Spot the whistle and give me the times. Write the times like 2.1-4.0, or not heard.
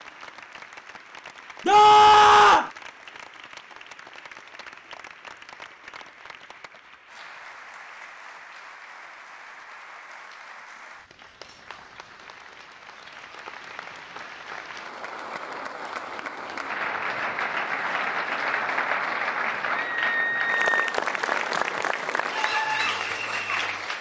not heard.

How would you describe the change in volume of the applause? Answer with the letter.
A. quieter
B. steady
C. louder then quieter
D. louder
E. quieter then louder
D.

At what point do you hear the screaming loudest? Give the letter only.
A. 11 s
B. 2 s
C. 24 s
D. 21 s
B.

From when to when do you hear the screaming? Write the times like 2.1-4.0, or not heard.
1.6-2.7, 19.7-20.9.